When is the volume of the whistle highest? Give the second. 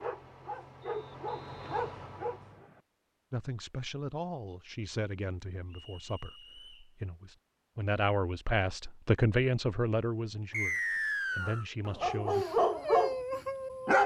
11 s.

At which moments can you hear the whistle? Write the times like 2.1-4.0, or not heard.
0.8-2.8, 5.7-6.9, 10.5-11.7.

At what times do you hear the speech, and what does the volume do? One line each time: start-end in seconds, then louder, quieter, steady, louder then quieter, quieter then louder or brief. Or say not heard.
3.3-10.8 quieter then louder
11.3-12.4 brief.